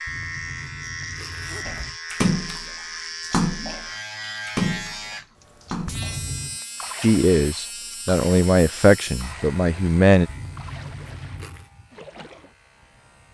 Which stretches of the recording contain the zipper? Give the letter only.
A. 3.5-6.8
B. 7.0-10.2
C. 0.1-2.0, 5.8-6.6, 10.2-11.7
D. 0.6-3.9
C.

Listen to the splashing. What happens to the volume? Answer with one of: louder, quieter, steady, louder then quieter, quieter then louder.
quieter.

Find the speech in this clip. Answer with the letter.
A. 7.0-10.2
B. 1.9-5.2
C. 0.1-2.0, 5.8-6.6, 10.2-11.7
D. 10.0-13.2
A.